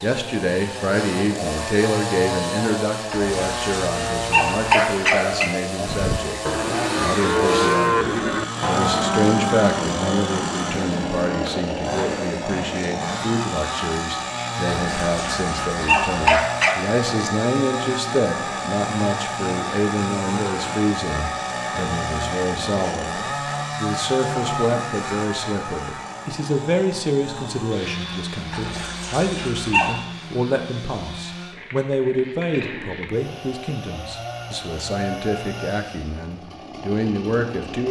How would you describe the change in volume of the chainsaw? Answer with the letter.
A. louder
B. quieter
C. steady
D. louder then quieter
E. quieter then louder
B.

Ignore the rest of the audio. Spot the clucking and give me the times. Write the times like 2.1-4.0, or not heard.
not heard.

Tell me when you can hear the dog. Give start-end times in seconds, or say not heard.
3.1-5.5, 14.8-16.8, 28.5-30.0.